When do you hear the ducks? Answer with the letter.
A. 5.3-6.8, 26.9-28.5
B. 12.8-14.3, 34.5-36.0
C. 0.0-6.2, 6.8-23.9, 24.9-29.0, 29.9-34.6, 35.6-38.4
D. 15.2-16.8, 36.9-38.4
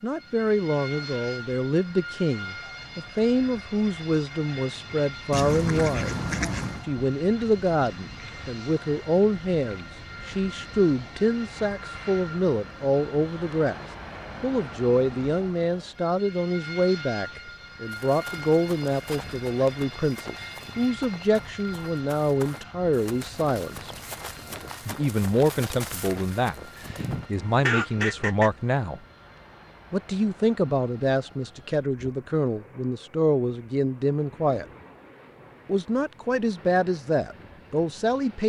A.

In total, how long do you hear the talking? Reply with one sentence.
You can hear the talking for 35 seconds altogether.